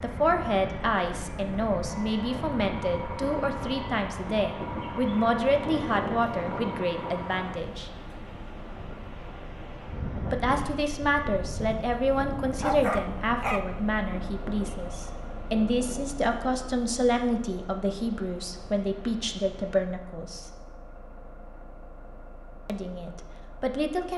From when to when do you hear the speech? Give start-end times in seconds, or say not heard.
0.0-7.9, 10.3-20.5, 22.6-24.1.